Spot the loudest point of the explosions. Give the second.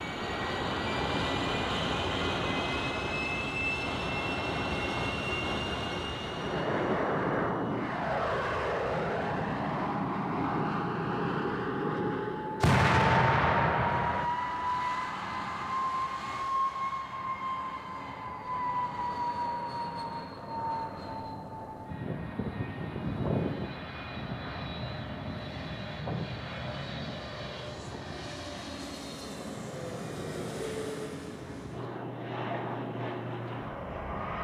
13 s.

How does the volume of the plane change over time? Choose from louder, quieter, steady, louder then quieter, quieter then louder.
quieter.